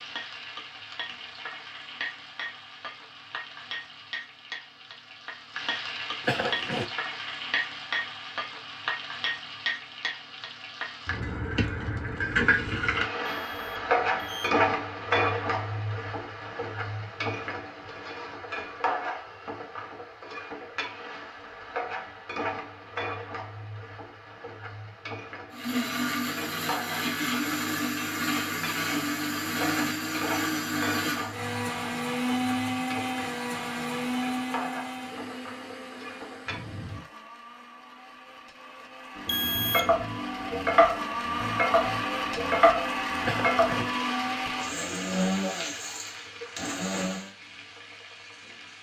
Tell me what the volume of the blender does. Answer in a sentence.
The loudness of the blender goes down, then up.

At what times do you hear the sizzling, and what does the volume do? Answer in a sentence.
You can hear the sizzling from 0.0 to 37.0 s, getting louder then quieter; and from 39.1 to 48.7 s, getting quieter.